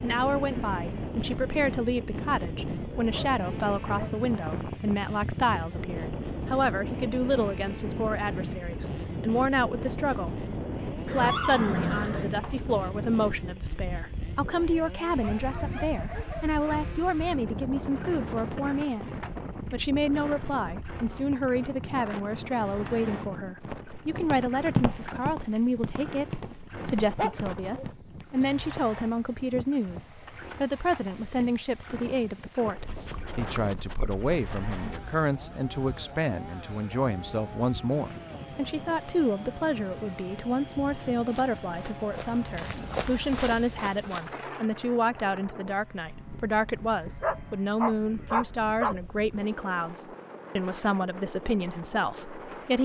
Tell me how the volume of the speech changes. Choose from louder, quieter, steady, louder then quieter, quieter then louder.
steady.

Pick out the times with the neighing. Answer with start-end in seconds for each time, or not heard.
11.1-12.6.